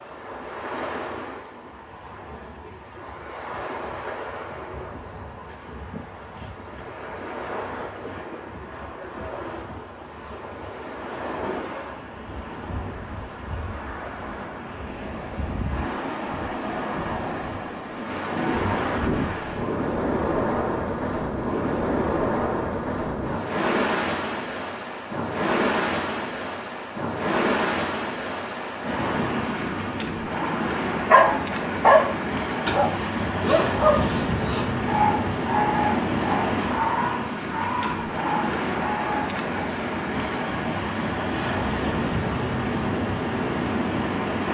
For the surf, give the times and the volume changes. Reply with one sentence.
The surf can be heard from 0.0 to 44.4 s, getting louder.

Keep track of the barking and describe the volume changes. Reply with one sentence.
The loudness of the barking goes down.